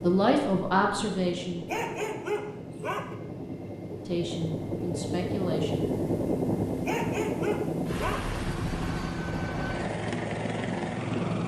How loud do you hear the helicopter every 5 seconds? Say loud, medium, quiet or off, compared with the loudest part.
medium, loud, loud.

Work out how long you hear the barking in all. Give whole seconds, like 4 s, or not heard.
3 s.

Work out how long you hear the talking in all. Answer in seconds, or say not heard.
4 s.